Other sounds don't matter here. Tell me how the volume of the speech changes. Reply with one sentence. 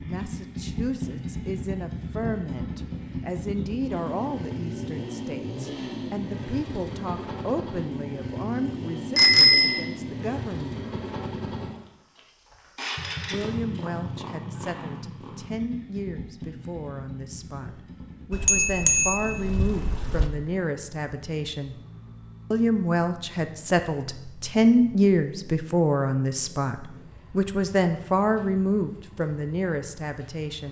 The volume of the speech goes up.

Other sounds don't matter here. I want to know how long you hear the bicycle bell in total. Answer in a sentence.
You can hear the bicycle bell for 3 seconds altogether.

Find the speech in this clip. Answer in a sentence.
The speech can be heard from 0.0 to 10.8 s, from 13.2 to 21.8 s and from 22.5 to 30.6 s.